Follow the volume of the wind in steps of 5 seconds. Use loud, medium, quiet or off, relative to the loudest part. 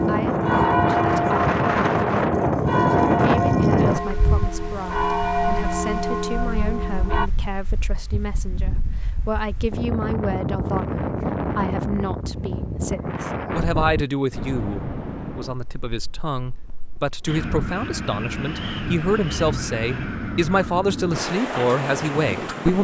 loud, quiet, medium, medium, medium.